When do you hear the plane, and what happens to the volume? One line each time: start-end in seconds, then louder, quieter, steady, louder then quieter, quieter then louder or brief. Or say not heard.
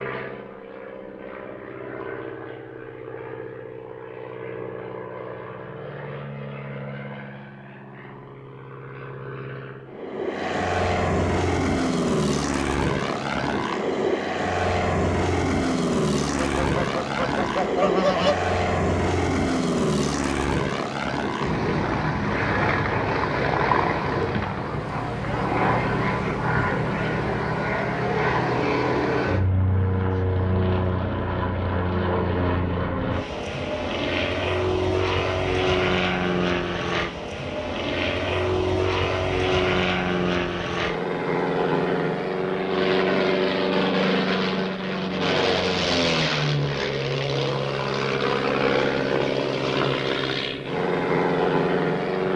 0.0-52.3 louder.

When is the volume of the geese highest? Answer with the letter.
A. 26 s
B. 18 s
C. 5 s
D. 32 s
B.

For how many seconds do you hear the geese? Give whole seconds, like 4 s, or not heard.
2 s.